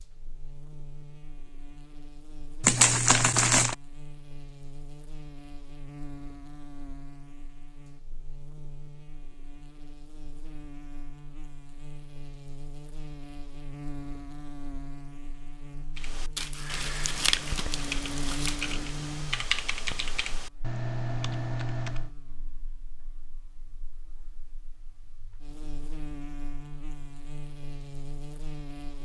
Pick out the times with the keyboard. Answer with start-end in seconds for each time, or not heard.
15.9-22.1.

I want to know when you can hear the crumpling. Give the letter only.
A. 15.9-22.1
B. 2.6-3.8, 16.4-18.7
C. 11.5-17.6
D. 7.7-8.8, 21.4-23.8
B.